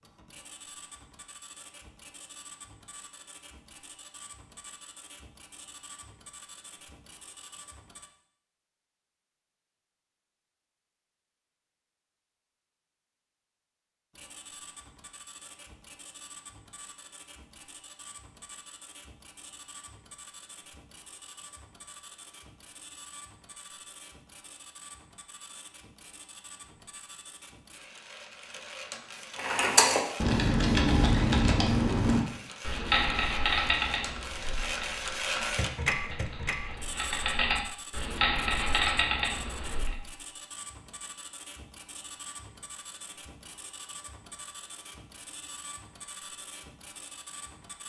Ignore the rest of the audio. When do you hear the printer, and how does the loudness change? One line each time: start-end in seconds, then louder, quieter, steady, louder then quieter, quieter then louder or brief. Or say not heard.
0.0-8.1 steady
14.1-47.8 louder then quieter.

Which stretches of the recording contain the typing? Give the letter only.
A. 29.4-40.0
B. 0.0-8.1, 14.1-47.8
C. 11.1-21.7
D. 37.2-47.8
A.